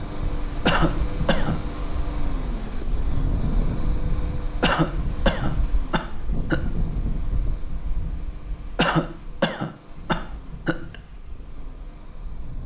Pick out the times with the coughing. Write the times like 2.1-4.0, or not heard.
0.7-1.6, 4.6-6.6, 8.8-10.9.